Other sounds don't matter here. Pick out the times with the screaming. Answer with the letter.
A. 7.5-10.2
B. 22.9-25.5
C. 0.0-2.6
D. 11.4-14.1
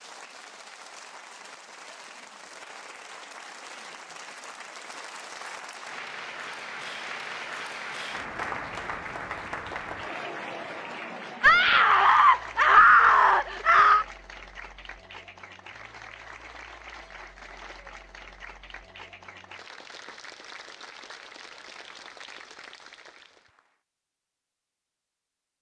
D.